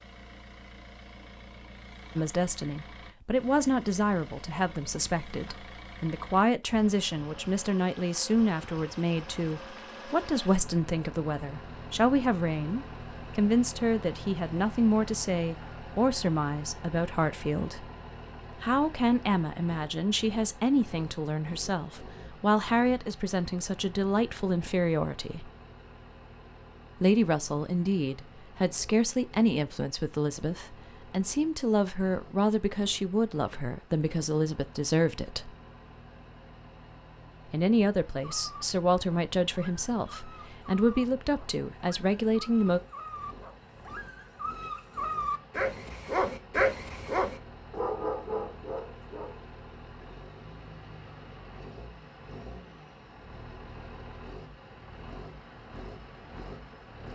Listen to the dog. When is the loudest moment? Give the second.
47 s.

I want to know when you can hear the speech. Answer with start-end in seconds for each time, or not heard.
2.1-17.9, 18.5-25.5, 27.0-35.5, 37.5-42.8.